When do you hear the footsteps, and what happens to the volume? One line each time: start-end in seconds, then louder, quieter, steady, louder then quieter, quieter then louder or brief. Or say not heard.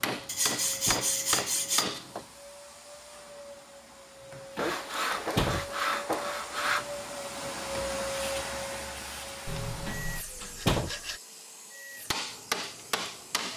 not heard.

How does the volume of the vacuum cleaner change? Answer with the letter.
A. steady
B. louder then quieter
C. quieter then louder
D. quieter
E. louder
B.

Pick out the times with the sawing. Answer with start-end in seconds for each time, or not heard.
0.2-1.9, 4.5-6.8, 9.4-11.2.